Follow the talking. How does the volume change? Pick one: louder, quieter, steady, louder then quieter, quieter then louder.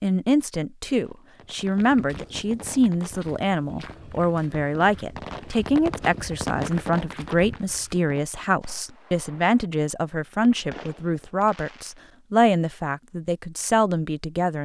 steady.